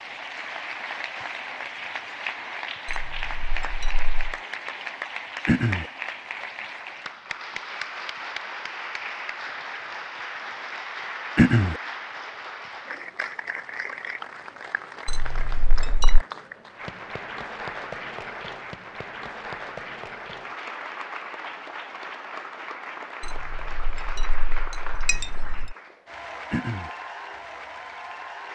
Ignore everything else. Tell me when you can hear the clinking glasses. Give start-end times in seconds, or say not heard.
2.9-4.3, 15.1-16.2, 23.2-25.8.